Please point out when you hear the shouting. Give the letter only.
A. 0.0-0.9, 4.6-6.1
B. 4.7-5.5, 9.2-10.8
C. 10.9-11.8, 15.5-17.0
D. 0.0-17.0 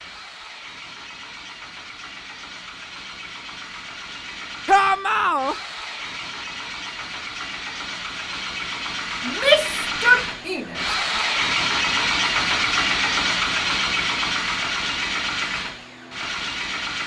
B.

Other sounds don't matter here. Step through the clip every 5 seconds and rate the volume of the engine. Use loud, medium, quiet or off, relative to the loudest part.
quiet, medium, loud, medium.